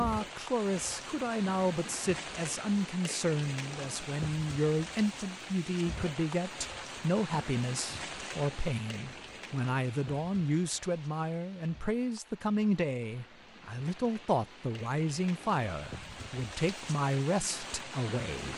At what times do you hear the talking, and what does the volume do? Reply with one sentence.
You can hear the talking from 0.0 to 18.5 s, at a steady volume.